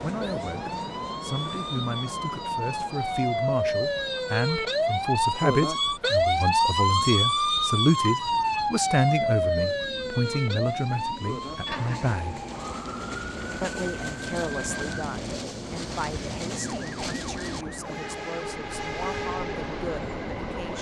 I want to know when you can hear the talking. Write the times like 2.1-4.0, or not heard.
0.0-12.4, 13.6-20.7.